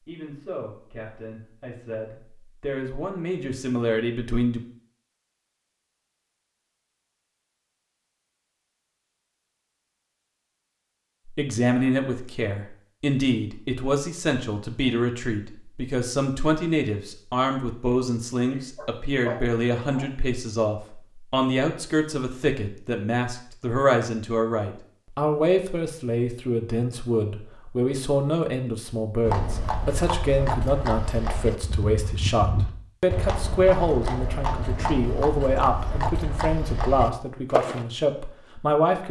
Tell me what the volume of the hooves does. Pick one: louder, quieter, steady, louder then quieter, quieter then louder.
steady.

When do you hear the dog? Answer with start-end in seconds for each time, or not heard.
18.5-20.1.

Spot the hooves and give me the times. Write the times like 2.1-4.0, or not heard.
29.2-37.9.